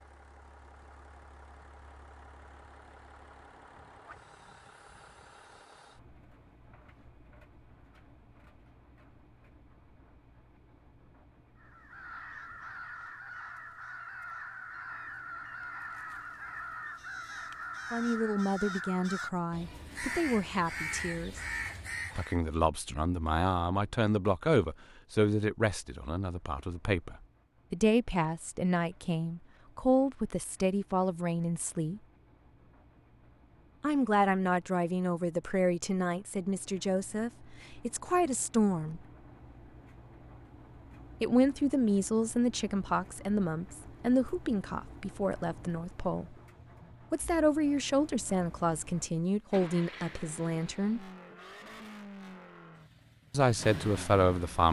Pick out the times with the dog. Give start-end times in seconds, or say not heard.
not heard.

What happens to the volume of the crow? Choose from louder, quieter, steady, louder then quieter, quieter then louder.
louder.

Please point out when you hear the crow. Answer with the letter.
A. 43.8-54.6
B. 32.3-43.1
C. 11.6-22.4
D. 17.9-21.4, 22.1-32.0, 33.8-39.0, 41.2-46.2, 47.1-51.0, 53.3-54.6
C.